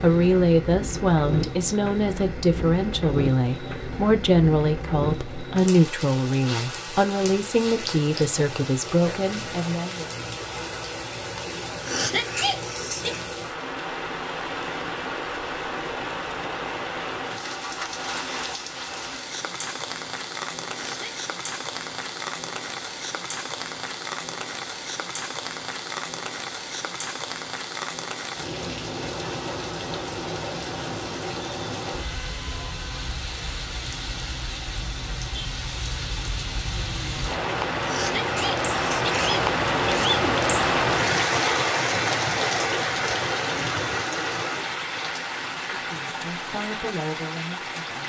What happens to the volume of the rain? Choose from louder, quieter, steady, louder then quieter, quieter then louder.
louder.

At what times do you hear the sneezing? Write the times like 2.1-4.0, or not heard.
11.8-13.2, 20.7-21.2, 37.8-40.2.